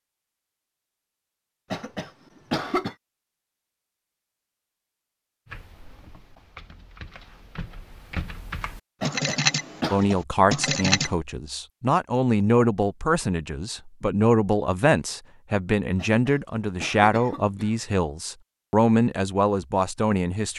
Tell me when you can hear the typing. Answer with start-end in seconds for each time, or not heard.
5.5-11.1.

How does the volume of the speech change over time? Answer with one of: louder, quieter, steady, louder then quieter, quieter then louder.
steady.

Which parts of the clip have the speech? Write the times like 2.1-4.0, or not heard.
9.9-20.5.